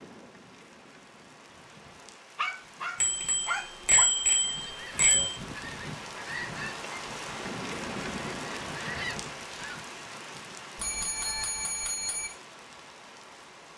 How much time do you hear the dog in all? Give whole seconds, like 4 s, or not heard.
2 s.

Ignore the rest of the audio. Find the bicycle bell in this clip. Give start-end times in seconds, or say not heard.
3.0-5.3, 10.8-12.3.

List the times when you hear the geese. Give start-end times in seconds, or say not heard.
4.4-9.9.